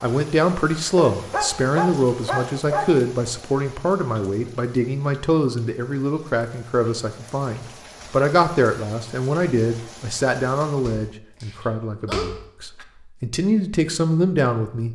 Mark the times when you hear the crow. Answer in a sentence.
The crow can't be heard in this clip.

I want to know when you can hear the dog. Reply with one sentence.
The dog can be heard from 0.9 to 3.0 s and from 10.8 to 12.8 s.